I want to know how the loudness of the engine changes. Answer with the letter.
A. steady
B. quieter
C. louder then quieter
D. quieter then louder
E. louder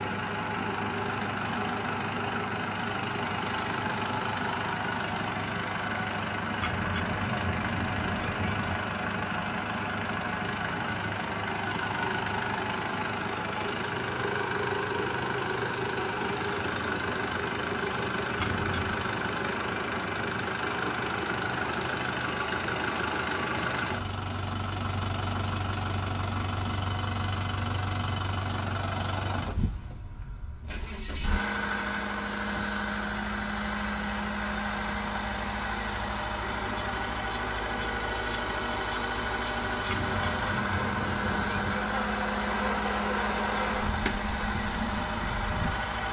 A.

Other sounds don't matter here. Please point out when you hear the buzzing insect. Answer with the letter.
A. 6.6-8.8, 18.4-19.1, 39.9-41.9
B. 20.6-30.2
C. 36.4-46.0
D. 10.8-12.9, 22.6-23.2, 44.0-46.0
C.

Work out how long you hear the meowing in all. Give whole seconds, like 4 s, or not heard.
5 s.